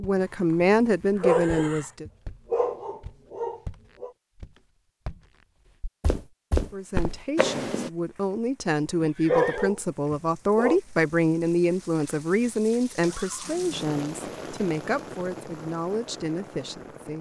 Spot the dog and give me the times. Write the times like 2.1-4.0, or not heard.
1.2-4.1, 9.2-10.8.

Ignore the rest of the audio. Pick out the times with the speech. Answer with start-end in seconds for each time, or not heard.
0.0-2.0, 6.7-17.1.